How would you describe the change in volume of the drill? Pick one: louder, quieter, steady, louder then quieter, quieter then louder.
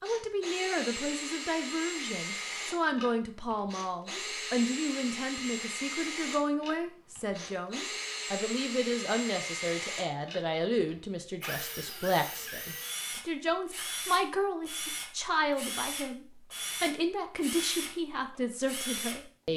steady.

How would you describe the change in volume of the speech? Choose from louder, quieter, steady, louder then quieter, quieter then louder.
steady.